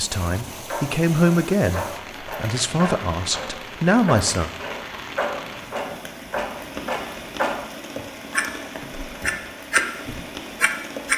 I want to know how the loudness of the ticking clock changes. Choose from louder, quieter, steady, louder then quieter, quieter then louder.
louder.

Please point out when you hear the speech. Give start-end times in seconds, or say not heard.
0.0-4.5.